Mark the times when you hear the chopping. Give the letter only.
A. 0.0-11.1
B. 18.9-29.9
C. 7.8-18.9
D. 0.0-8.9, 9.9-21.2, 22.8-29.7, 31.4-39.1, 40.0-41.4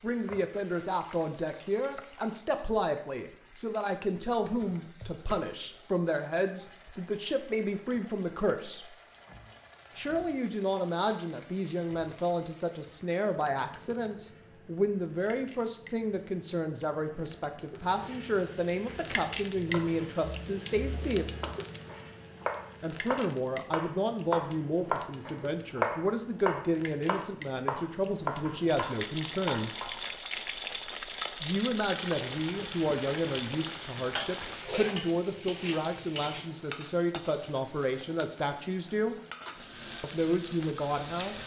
B.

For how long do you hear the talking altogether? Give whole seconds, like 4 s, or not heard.
36 s.